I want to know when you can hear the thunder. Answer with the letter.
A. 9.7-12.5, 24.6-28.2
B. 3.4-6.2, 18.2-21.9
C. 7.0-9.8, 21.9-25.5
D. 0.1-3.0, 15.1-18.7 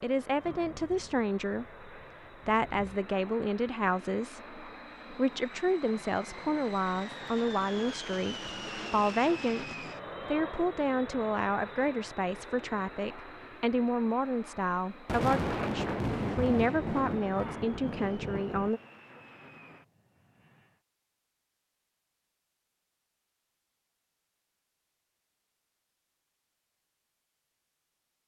D.